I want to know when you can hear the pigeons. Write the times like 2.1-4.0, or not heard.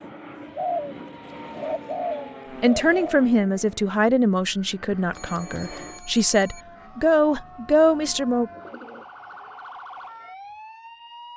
0.4-3.2, 7.8-9.6.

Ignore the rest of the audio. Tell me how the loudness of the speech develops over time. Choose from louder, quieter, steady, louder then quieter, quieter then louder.
quieter then louder.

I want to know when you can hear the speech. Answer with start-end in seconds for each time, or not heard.
2.6-8.5.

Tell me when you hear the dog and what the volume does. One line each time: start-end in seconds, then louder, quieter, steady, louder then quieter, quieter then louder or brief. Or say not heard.
not heard.